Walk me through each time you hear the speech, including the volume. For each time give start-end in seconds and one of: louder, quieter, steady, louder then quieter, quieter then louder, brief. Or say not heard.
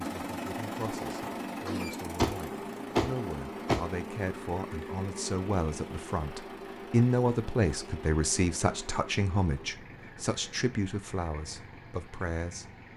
0.0-12.9 louder then quieter.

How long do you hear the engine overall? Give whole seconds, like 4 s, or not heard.
13 s.